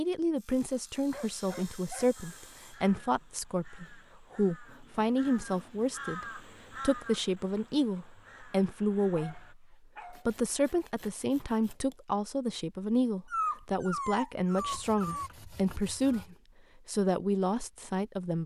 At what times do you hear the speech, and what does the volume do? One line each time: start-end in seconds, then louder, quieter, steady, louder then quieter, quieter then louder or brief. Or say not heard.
0.0-18.4 steady.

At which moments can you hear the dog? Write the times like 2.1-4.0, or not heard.
1.1-2.5, 9.2-10.3, 13.3-15.3.